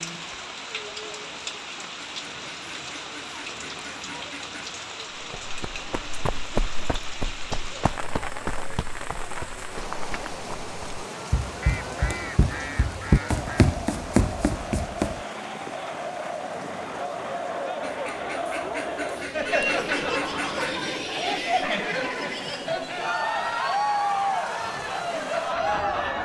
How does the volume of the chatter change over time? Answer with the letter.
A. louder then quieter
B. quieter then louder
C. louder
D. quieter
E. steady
C.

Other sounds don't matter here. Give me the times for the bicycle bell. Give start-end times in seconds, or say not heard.
not heard.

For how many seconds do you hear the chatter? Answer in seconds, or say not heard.
26 s.